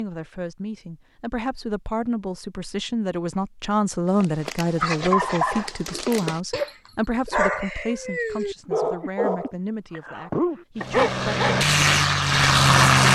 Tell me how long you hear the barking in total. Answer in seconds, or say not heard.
7 s.